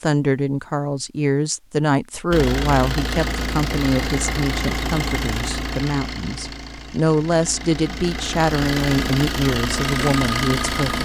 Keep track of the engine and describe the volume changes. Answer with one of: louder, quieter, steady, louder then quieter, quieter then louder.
quieter then louder.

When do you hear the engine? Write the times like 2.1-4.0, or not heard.
2.3-11.0.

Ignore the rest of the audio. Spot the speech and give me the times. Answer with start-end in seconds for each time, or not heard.
0.0-11.0.